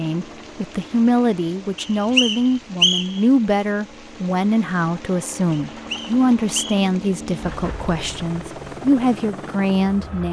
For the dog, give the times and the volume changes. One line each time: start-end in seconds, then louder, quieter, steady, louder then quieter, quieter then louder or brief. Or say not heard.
not heard.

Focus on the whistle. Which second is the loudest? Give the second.
3 s.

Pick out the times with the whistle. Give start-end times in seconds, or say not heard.
1.8-3.2, 5.5-6.8.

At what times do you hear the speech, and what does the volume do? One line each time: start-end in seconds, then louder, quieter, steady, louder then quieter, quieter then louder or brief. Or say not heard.
0.0-10.2 steady.